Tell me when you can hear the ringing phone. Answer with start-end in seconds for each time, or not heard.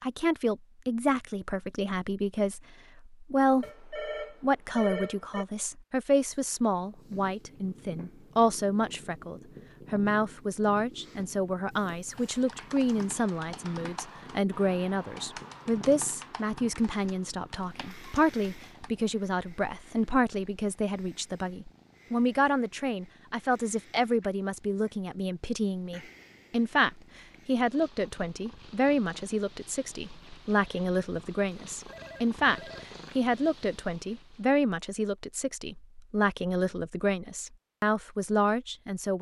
3.6-5.5, 31.9-33.1.